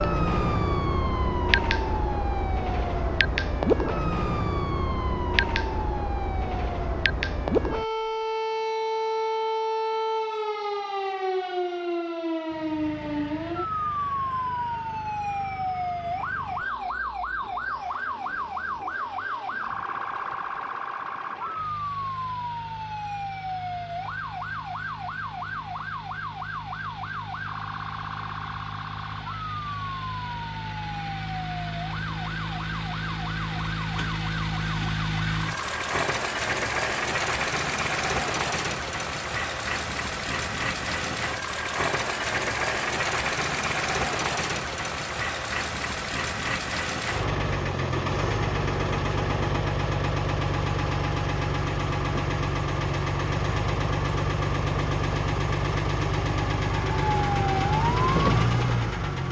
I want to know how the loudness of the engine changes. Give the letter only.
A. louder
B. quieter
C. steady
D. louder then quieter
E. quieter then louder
A.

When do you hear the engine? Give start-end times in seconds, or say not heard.
12.4-59.2.